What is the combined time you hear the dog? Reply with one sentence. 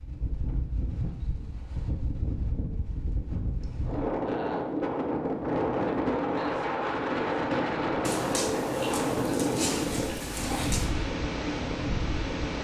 The dog can be heard for 3 seconds in total.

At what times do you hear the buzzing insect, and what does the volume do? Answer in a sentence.
The buzzing insect can't be heard in this clip.